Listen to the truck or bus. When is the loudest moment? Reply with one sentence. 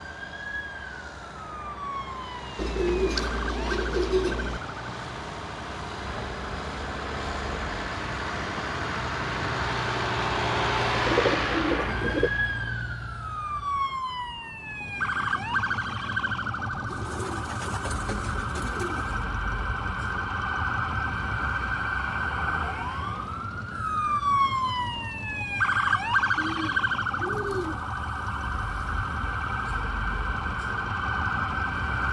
The volume of the truck or bus peaks at 11 seconds.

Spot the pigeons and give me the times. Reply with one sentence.
The pigeons can be heard from 2.5 to 4.6 s, from 10.9 to 12.3 s, from 16.9 to 19.2 s and from 26.4 to 27.9 s.